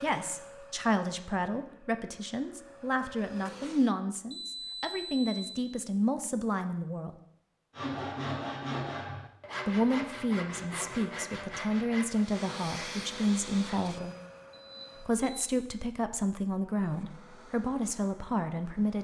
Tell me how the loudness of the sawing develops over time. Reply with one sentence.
The loudness of the sawing goes down.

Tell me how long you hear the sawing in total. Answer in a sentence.
You can hear the sawing for 6 seconds altogether.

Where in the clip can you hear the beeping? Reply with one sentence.
The beeping can be heard from 4.3 to 5.7 s and from 14.5 to 15.5 s.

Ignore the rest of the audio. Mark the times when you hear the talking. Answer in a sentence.
You can hear the talking from 0.0 to 7.2 s, from 9.7 to 14.2 s and from 15.0 to 19.0 s.